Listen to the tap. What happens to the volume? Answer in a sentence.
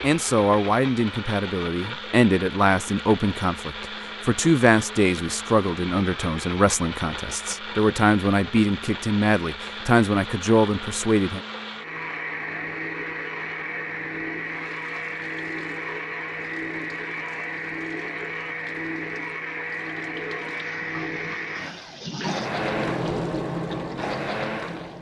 The loudness of the tap goes up.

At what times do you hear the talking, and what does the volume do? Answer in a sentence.
The talking can be heard from 0.0 to 11.4 s, at a steady volume.